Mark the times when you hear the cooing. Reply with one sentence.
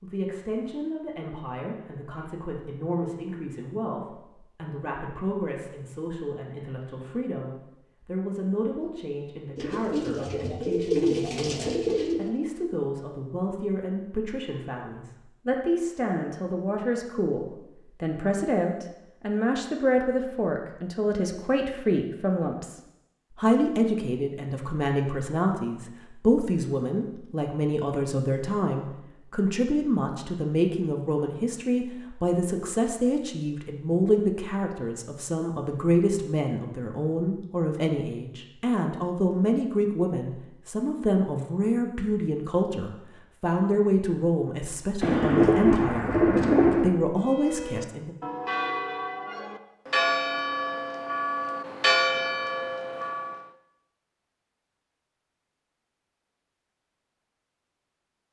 The cooing can be heard from 9.6 to 12.3 s and from 45.0 to 46.9 s.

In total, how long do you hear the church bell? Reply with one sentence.
You can hear the church bell for 6 seconds altogether.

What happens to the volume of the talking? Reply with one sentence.
The volume of the talking goes up.